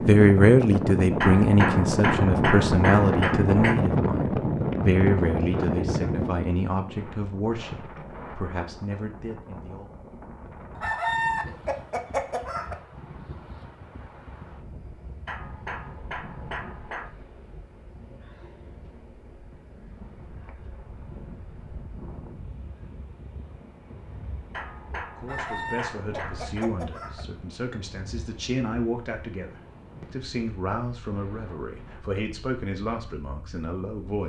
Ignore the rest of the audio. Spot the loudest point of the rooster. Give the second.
11 s.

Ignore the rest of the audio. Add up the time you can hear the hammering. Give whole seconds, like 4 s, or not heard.
7 s.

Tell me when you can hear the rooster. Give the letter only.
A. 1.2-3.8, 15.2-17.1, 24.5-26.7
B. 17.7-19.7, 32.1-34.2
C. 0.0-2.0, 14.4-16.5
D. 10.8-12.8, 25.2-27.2
D.